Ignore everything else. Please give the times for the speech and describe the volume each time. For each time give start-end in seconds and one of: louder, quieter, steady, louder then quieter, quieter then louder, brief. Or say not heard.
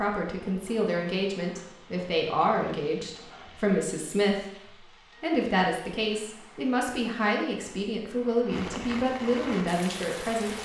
0.0-10.6 steady.